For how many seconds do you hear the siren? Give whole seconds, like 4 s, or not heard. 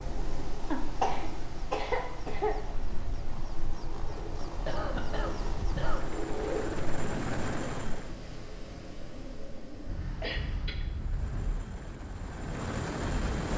not heard.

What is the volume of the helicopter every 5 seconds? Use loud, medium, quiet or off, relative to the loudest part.
medium, loud, loud.